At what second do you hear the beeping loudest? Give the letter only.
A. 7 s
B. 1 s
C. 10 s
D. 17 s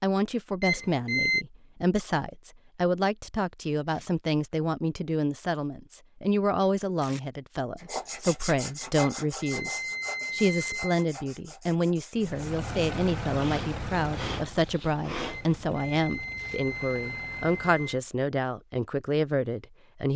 B.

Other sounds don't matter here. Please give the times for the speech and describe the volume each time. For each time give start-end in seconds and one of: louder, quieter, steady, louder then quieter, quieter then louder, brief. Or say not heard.
0.0-20.1 steady.